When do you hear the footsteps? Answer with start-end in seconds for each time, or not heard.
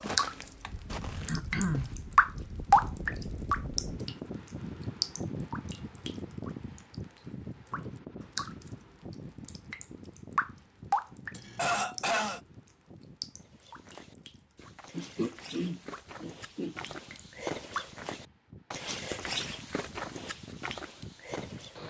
0.0-1.9, 13.3-21.8.